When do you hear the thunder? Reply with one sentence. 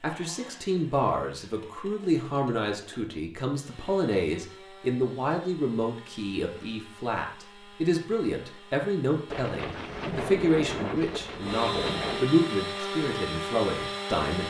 The thunder can be heard from 9.3 to 12.2 s.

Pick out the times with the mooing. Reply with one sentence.
The mooing can't be heard in this clip.